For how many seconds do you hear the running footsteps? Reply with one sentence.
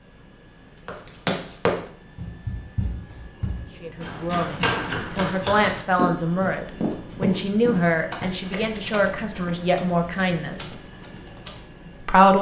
You can hear the running footsteps for 11 seconds altogether.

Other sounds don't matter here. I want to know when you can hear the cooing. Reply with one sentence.
You can't hear the cooing here.